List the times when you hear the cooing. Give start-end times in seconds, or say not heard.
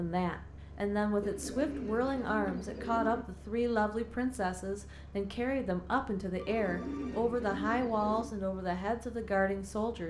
1.2-3.2, 6.5-8.3.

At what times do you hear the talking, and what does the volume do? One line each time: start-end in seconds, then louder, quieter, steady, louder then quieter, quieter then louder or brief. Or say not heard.
0.0-10.0 steady.